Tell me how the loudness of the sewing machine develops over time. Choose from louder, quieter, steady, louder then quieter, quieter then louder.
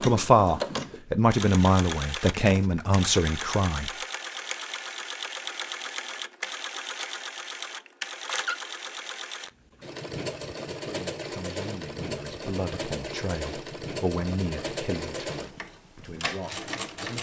steady.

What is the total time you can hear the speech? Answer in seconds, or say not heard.
10 s.